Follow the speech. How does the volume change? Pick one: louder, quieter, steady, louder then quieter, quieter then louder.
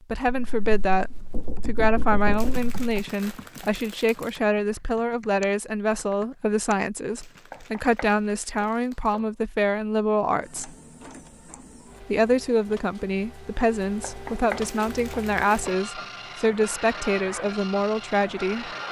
steady.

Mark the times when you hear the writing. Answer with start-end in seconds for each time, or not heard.
not heard.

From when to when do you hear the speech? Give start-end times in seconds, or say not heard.
0.1-10.8, 12.0-18.7.